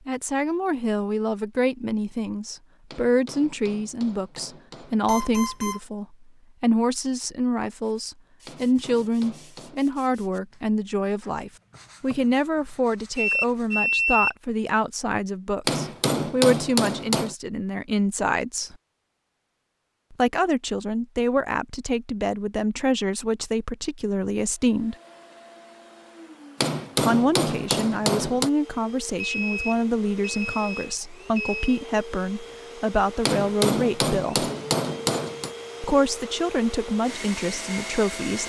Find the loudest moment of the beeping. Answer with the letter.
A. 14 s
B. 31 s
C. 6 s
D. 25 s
A.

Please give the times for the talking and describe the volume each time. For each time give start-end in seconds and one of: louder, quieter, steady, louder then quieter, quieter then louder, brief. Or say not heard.
0.1-18.8 steady
20.1-24.9 steady
27.1-34.5 steady
35.8-38.4 brief.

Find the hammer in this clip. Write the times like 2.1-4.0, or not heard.
2.9-5.4, 8.4-9.9, 15.7-17.4, 26.6-28.5, 33.2-35.5.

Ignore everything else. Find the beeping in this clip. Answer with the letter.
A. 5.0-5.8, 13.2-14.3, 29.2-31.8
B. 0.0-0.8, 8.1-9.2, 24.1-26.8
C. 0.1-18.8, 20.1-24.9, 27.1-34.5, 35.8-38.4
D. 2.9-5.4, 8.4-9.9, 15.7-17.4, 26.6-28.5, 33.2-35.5
A.